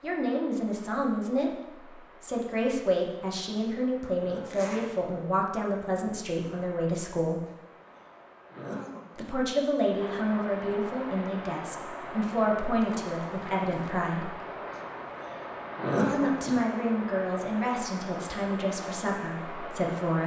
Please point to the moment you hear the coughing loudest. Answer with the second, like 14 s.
16 s.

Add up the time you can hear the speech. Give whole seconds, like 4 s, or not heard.
17 s.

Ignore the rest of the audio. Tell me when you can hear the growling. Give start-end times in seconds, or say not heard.
not heard.